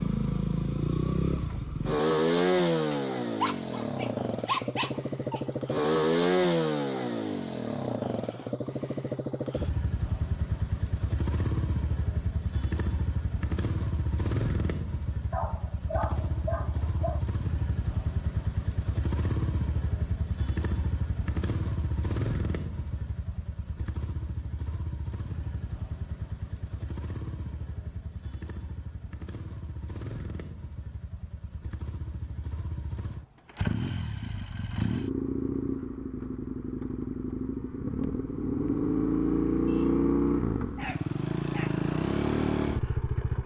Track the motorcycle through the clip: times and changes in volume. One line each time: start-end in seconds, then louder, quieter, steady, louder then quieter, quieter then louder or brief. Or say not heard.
0.0-43.4 quieter then louder.